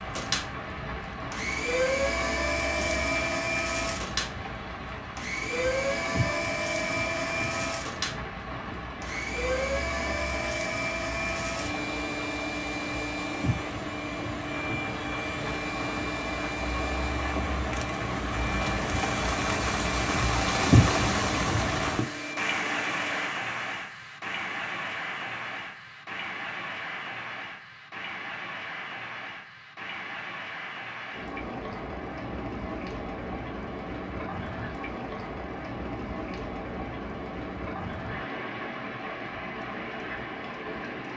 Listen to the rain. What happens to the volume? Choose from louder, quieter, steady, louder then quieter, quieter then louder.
louder then quieter.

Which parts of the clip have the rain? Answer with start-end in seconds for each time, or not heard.
0.0-41.1.